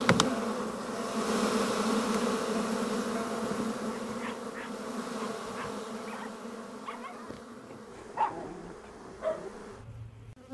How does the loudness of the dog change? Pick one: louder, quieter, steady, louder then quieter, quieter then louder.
louder.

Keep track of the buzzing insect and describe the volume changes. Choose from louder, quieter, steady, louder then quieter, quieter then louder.
quieter.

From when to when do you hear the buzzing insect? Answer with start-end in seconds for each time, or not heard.
0.0-10.5.